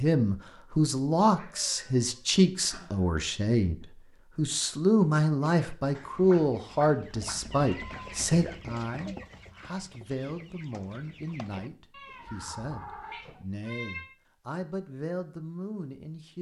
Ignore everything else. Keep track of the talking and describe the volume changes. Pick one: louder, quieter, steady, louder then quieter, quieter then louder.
quieter.